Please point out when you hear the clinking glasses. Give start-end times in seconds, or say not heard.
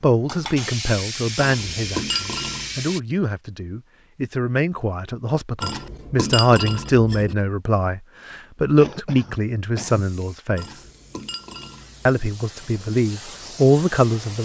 1.4-2.8, 5.6-7.3, 10.6-12.2.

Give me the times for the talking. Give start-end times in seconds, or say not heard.
0.0-10.7, 12.1-14.4.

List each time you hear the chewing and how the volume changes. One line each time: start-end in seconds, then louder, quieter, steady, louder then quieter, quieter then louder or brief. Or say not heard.
not heard.